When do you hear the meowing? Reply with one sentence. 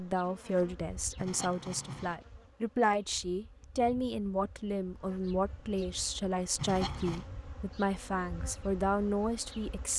You can hear the meowing from 1.1 to 2.2 s and from 6.5 to 7.3 s.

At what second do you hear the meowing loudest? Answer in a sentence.
The volume of the meowing peaks at 7 seconds.